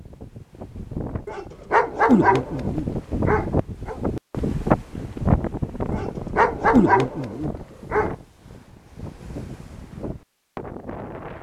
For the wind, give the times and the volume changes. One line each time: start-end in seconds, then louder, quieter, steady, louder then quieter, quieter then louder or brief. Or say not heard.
0.0-11.3 louder then quieter.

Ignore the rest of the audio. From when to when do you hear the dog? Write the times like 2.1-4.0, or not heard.
1.2-4.0, 5.9-8.1.